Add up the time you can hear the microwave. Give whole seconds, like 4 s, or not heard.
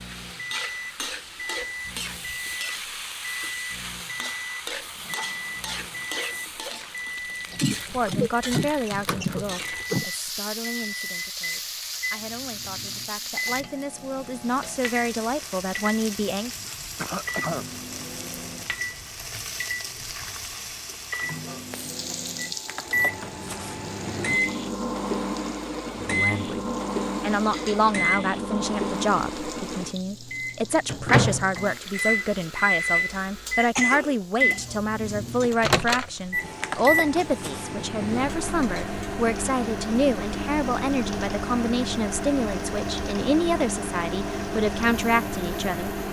46 s.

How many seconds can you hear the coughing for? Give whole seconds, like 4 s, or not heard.
4 s.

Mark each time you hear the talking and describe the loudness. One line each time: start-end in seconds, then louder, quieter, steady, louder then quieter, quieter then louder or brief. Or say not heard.
7.9-16.5 quieter then louder
25.9-46.0 steady.